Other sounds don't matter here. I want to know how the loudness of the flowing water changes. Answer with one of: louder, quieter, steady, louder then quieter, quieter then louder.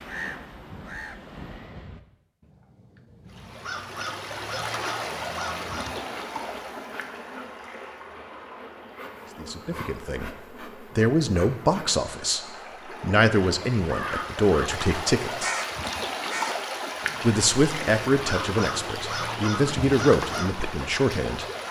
quieter then louder.